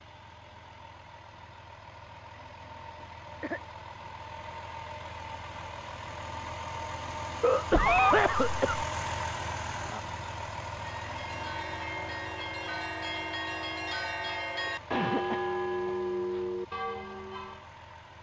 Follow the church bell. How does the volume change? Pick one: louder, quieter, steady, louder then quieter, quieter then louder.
louder.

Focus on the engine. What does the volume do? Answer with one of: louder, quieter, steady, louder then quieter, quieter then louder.
louder then quieter.